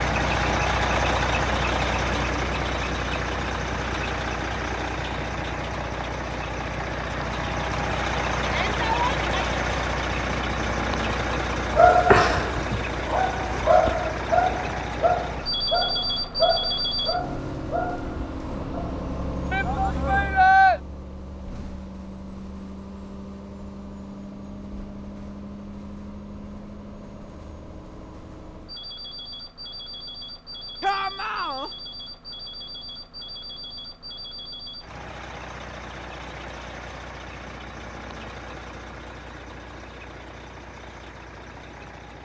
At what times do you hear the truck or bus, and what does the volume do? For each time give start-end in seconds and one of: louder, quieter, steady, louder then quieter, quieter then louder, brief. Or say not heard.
0.0-42.1 quieter.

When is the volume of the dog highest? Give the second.
12 s.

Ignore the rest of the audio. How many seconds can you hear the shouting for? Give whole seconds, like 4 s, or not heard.
3 s.